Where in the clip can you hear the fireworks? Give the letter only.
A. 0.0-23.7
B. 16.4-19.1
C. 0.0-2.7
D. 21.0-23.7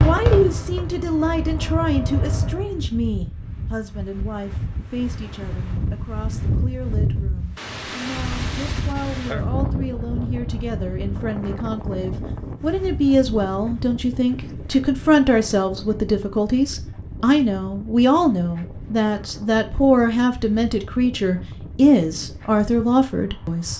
C.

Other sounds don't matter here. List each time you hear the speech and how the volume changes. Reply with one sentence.
You can hear the speech from 0.0 to 23.7 s, getting quieter then louder.